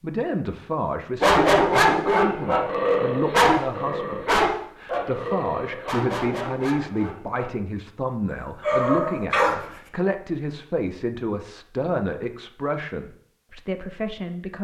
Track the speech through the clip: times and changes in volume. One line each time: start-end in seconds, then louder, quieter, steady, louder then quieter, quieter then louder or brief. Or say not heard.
0.0-14.6 steady.